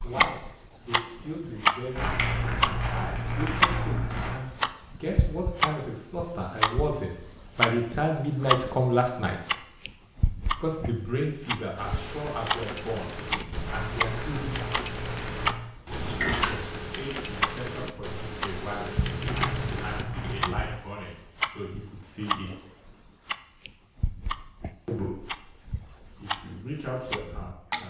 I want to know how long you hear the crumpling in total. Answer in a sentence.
The crumpling can be heard for 6 seconds in total.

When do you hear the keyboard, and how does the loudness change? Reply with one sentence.
You can hear the keyboard from 11.8 to 20.4 s, at a steady volume.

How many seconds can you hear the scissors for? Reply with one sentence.
You can hear the scissors for 3 seconds altogether.